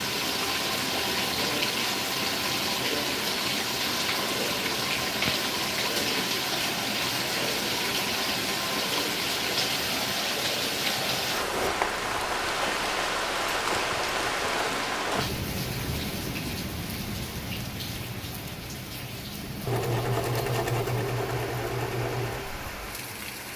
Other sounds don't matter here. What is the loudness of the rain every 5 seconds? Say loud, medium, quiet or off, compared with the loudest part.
loud, loud, loud, medium, medium.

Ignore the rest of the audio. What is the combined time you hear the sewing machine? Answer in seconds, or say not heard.
4 s.